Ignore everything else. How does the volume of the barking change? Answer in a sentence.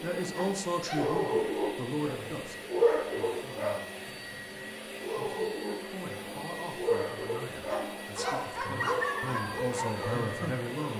The loudness of the barking goes down.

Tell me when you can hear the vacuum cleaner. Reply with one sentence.
You can hear the vacuum cleaner from 0.0 to 10.9 s.